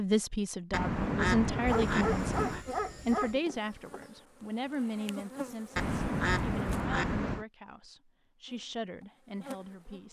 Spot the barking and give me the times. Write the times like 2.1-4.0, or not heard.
1.6-3.4.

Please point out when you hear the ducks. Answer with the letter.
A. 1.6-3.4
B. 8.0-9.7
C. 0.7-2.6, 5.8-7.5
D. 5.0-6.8
C.